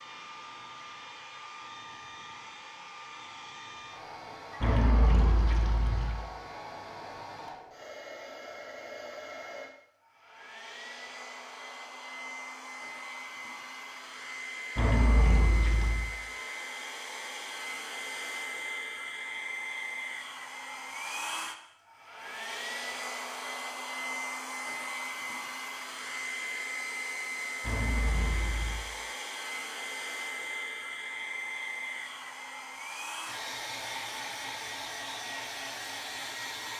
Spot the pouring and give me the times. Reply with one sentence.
You can hear the pouring from 4.6 to 6.2 s, from 14.8 to 16.1 s and from 27.6 to 28.9 s.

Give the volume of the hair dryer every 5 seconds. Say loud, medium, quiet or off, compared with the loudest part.
medium, medium, medium, loud, loud, loud, loud, loud.